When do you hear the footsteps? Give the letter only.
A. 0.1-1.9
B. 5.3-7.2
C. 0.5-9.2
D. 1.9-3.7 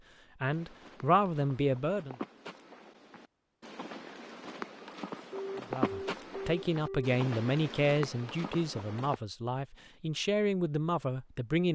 C.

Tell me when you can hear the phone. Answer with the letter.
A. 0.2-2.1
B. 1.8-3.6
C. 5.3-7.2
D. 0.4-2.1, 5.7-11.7
C.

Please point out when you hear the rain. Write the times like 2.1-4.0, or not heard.
not heard.